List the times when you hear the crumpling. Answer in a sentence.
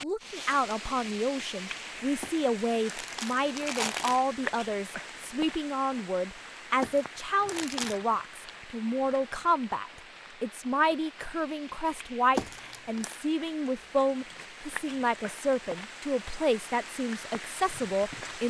The crumpling can be heard from 2.2 to 4.2 s, from 6.8 to 8.0 s and from 12.3 to 13.2 s.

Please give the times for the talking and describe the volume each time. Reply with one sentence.
You can hear the talking from 0.0 to 18.4 s, at a steady volume.